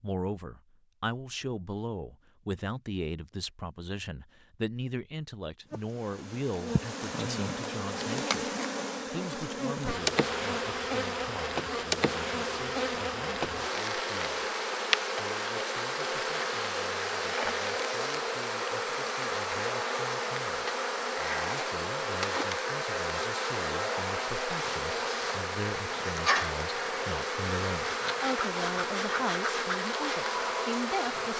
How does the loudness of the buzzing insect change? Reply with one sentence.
The loudness of the buzzing insect stays about the same.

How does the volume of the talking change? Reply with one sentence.
The loudness of the talking goes down, then up.